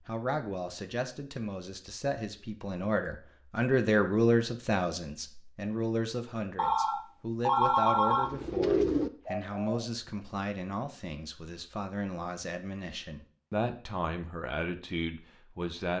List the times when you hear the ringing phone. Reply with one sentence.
The ringing phone can be heard from 6.5 to 8.3 s.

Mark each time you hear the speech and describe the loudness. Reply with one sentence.
You can hear the speech from 0.1 to 15.9 s, getting louder then quieter.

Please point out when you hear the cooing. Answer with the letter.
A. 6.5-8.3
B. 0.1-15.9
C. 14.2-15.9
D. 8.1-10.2
D.